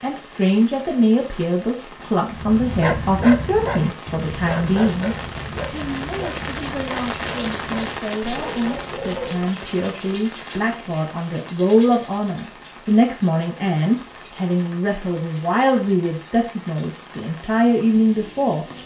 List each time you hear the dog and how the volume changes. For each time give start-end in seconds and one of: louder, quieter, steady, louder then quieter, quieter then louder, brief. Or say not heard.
2.2-9.5 quieter.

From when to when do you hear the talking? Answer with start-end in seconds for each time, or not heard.
0.0-18.6.